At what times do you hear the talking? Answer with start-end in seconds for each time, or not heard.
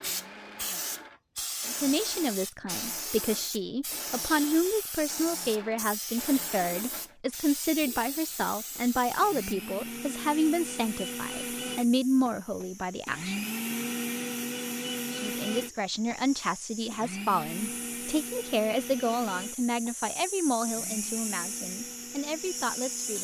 1.6-13.3, 15.1-23.1.